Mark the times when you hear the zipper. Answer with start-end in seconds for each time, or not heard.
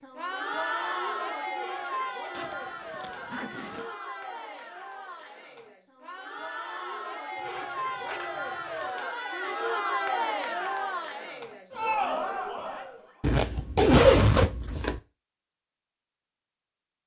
2.3-4.0, 7.3-8.9, 13.2-15.0.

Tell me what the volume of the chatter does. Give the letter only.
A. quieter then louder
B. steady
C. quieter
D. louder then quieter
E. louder
A.